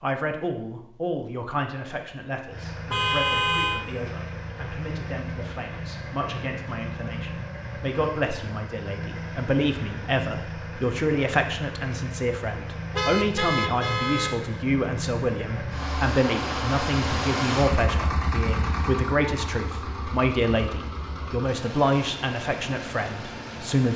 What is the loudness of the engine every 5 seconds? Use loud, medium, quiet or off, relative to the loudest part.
medium, medium, medium, loud, medium.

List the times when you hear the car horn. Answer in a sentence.
You can hear the car horn from 2.9 to 3.9 s and from 12.9 to 14.3 s.